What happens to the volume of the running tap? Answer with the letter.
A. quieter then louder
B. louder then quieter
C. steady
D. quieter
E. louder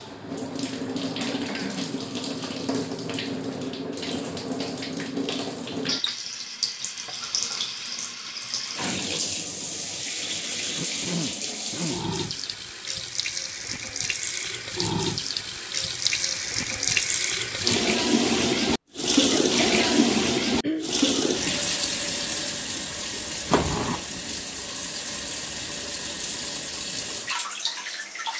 B.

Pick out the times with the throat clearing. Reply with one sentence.
The throat clearing can be heard from 1.1 to 2.0 s, from 10.7 to 12.1 s and from 19.3 to 20.9 s.